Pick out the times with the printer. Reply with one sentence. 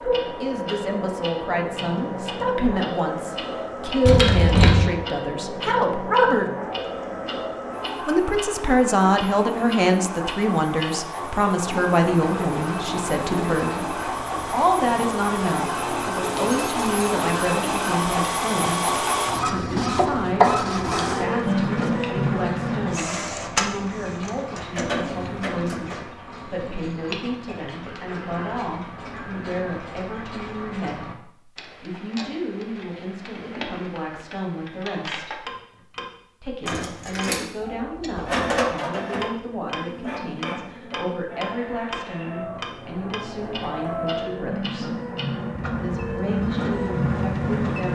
You can hear the printer from 0.0 to 26.1 s and from 38.1 to 47.9 s.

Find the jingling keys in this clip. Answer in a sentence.
The jingling keys can be heard from 4.0 to 4.9 s, from 16.4 to 17.1 s and from 36.6 to 37.5 s.